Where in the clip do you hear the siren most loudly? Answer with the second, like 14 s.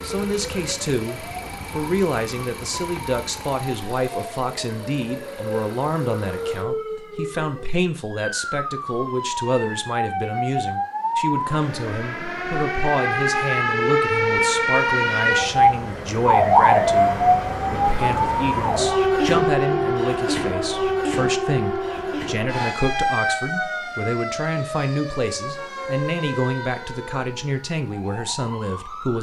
17 s.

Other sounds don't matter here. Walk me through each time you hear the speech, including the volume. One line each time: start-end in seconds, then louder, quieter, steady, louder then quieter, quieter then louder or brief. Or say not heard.
0.0-29.1 steady.